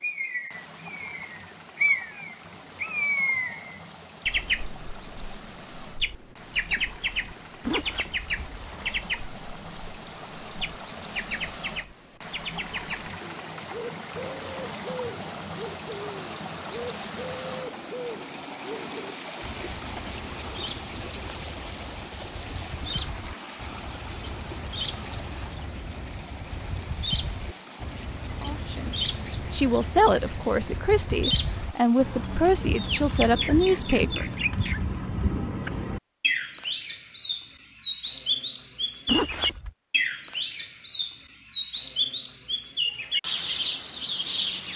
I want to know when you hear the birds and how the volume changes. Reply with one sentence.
The birds can be heard from 0.0 to 44.7 s, getting quieter then louder.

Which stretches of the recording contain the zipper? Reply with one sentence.
You can hear the zipper from 7.6 to 9.1 s and from 39.0 to 39.7 s.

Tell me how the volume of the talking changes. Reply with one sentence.
The volume of the talking stays about the same.